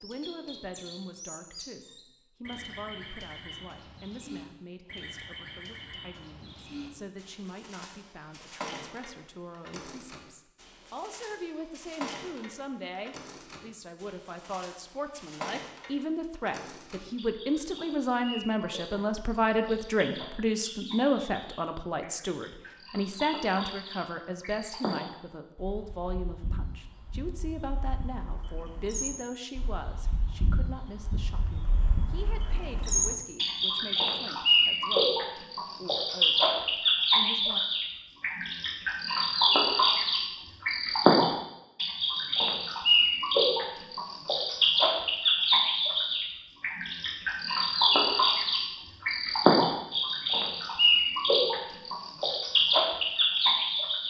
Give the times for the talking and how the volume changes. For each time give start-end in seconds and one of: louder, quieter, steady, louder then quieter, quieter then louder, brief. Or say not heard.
0.0-37.6 louder then quieter.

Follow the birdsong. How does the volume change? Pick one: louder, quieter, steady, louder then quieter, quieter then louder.
louder.